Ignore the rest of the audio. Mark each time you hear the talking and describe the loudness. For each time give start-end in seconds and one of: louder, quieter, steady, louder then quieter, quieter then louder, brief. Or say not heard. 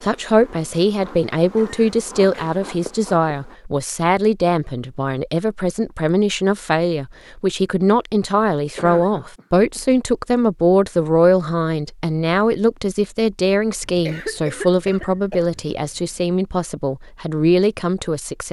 0.0-18.4 steady.